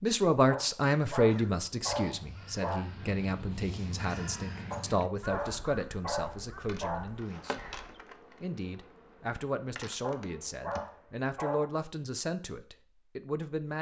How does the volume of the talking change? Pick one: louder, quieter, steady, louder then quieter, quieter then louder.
quieter.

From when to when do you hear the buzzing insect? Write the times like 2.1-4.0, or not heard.
6.3-8.8, 9.8-10.8.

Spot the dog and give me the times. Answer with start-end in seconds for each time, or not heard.
0.5-2.9, 4.7-7.1, 10.0-11.7.